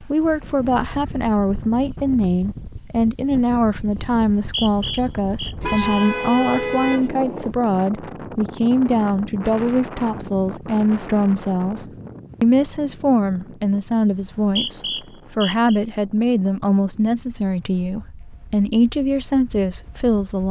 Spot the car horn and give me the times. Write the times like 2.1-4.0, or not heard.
5.6-7.1.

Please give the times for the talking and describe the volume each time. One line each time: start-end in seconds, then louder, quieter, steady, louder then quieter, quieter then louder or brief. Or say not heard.
0.0-20.4 steady.